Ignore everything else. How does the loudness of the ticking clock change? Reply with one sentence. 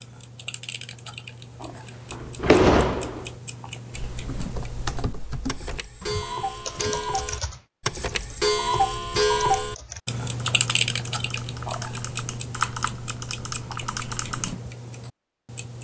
The loudness of the ticking clock goes up, then down.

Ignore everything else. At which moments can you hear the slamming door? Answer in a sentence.
The slamming door can be heard from 1.6 to 3.3 s.